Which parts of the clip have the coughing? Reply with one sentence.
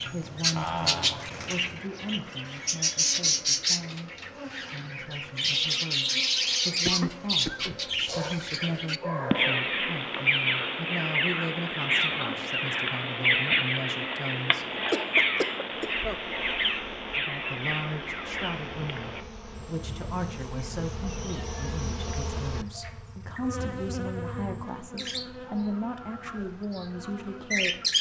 The coughing can be heard from 6.8 to 8.6 s and from 14.7 to 16.2 s.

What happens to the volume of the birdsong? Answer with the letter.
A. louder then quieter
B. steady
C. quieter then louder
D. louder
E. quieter
E.